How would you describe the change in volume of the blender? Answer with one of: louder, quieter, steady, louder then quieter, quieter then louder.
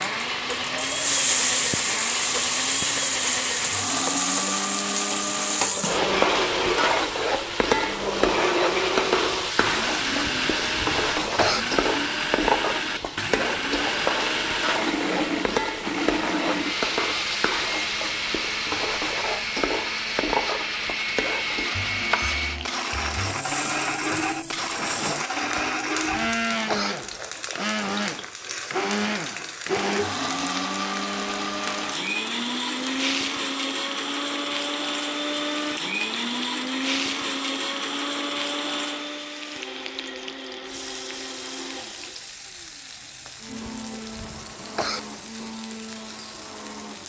quieter.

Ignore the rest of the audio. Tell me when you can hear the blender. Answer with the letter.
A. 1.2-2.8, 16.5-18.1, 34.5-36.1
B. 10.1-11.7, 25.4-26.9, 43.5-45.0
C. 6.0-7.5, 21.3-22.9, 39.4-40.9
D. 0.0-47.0
D.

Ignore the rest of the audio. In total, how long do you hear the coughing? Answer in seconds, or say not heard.
5 s.